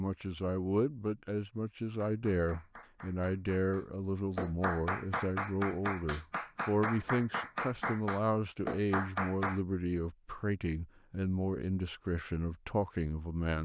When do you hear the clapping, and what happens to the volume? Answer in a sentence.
The clapping can be heard from 1.9 to 9.6 s, getting louder.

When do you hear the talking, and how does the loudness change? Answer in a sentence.
The talking can be heard from 0.0 to 13.5 s, at a steady volume.